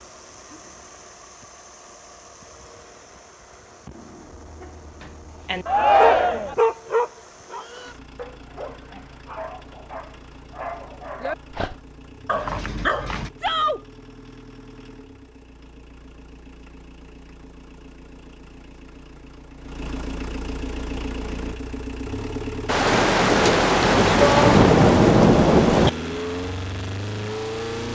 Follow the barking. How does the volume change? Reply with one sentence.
The volume of the barking goes down, then up.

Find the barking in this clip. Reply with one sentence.
You can hear the barking from 4.6 to 13.3 s.